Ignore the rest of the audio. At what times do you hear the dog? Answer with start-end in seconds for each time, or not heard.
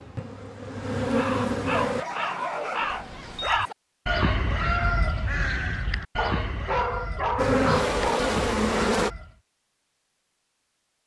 1.7-3.8, 6.2-8.2.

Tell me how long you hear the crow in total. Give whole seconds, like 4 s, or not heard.
8 s.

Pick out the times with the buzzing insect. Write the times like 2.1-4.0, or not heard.
0.0-2.0, 7.3-9.1.